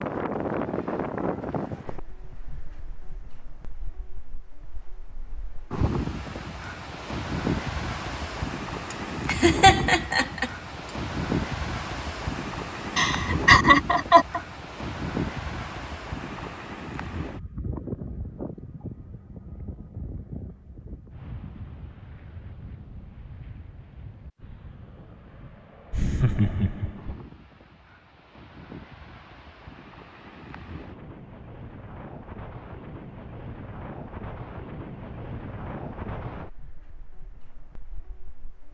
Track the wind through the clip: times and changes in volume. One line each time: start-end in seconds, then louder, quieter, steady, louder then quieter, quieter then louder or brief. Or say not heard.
0.0-38.6 quieter then louder.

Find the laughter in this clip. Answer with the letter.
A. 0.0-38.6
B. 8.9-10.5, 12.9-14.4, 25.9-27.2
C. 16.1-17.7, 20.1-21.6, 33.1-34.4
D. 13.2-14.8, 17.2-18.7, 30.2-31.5
B.